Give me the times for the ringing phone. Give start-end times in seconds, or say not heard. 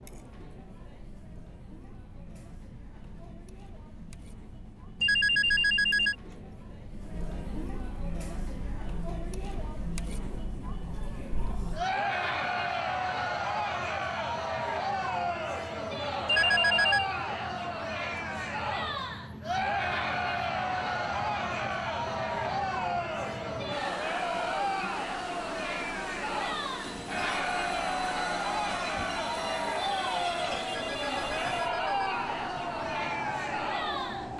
5.0-6.2, 16.2-17.1, 30.9-32.0.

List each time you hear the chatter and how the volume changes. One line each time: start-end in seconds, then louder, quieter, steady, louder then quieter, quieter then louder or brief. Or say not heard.
0.0-34.3 louder.